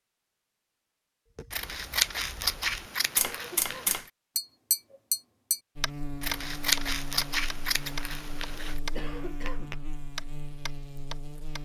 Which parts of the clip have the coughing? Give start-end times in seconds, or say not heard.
3.2-4.0, 8.9-9.8.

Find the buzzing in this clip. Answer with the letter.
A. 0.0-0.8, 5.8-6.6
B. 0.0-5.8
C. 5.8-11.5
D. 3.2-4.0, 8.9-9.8
C.